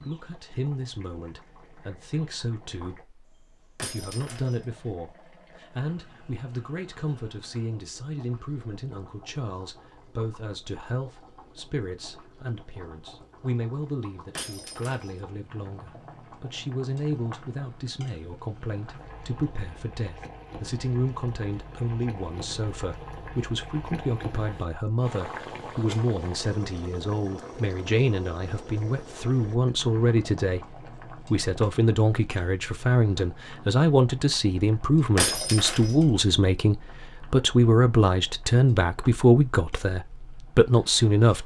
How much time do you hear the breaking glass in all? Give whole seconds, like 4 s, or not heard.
2 s.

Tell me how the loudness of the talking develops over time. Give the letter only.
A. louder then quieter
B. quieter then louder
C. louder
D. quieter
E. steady
C.